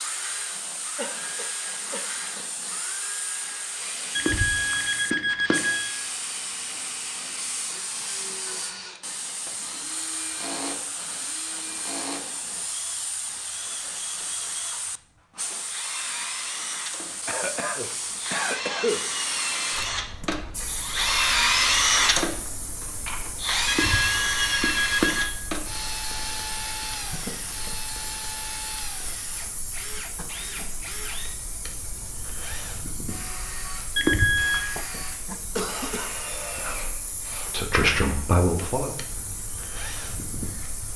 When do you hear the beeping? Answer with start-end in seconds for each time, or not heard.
4.2-6.0, 23.6-25.4, 34.0-34.6.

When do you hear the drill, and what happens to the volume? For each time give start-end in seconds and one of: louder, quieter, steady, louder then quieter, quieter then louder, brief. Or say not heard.
0.0-40.9 louder then quieter.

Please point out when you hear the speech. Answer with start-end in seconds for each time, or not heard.
36.6-39.0.